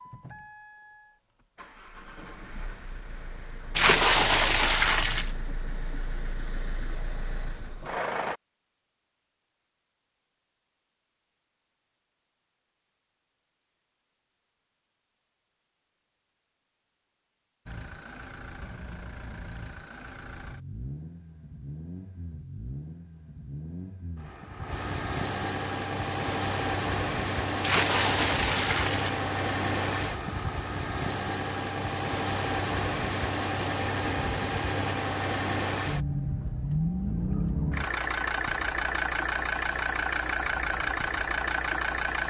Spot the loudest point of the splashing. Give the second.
4 s.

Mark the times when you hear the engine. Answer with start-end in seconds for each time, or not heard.
0.0-8.4, 17.6-42.2.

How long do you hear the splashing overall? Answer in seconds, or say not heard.
3 s.